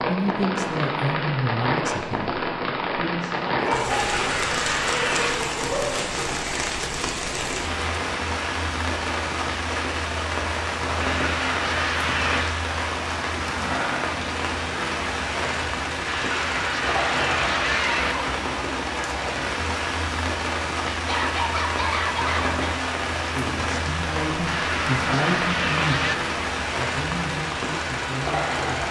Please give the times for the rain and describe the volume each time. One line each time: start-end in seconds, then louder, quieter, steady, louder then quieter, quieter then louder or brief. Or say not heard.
0.0-28.8 steady.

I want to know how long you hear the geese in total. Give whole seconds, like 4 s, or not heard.
7 s.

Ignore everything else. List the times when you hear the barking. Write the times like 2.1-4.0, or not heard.
3.5-6.0, 20.9-22.8.